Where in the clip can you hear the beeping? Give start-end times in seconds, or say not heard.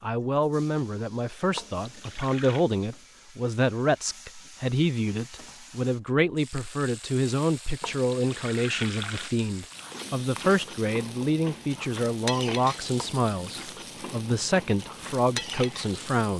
not heard.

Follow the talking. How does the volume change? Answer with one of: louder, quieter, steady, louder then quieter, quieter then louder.
steady.